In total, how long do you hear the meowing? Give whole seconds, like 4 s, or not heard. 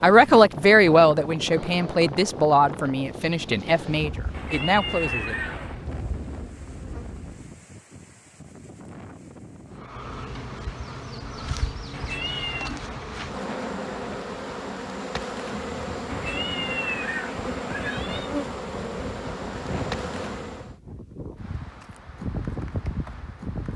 5 s.